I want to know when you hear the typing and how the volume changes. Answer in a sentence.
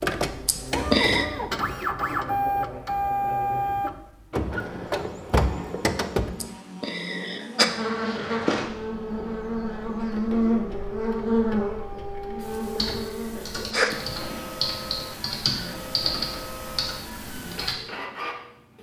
The typing can be heard from 12.4 to 17.8 s, getting louder then quieter.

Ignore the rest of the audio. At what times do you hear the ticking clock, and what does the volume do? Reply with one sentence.
The ticking clock can't be heard in this clip.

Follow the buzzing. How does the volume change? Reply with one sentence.
The loudness of the buzzing goes up.